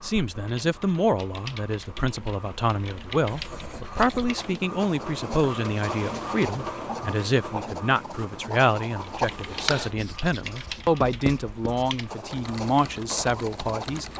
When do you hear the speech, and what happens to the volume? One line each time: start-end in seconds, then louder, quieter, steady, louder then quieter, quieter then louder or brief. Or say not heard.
0.0-14.1 steady.